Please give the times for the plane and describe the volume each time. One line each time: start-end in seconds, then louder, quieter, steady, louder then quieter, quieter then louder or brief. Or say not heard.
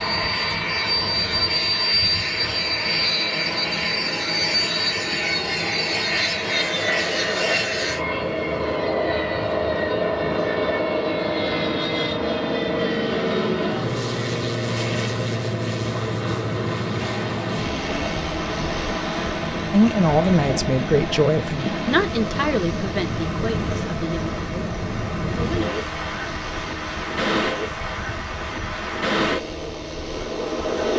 0.0-30.9 quieter.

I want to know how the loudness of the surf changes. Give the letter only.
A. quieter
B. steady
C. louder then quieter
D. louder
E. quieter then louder
D.